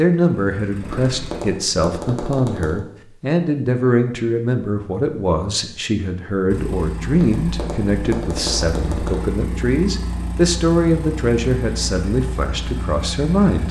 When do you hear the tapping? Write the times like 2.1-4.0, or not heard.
0.8-2.8, 7.1-9.2.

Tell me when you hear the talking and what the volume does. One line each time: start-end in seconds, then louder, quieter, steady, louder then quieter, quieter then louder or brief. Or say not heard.
0.0-13.6 steady.